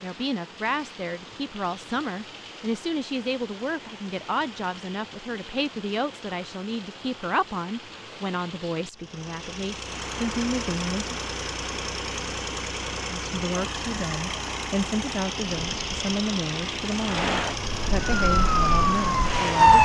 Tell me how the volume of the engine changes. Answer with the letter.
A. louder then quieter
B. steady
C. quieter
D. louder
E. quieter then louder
B.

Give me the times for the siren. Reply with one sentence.
You can hear the siren from 18.2 to 19.8 s.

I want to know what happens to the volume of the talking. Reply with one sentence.
The volume of the talking stays about the same.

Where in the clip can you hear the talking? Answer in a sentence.
The talking can be heard from 0.0 to 11.2 s and from 13.1 to 19.8 s.